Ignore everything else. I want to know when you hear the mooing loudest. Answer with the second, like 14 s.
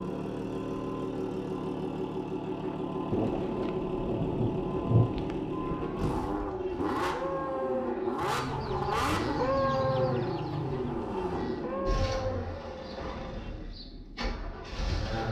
10 s.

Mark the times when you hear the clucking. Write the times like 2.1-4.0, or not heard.
8.2-10.9.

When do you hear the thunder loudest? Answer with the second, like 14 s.
5 s.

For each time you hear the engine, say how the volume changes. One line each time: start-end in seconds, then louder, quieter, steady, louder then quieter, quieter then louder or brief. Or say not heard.
0.0-15.2 quieter.